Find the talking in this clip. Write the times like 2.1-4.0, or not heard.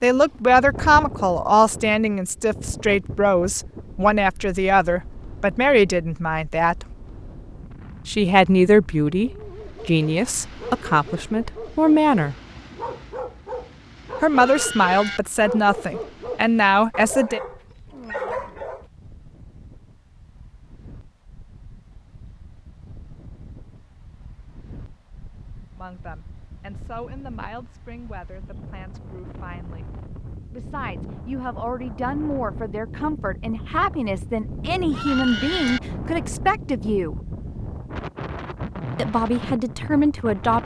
0.0-6.8, 8.1-12.3, 14.2-17.4, 25.8-29.9, 30.5-37.1, 39.0-40.6.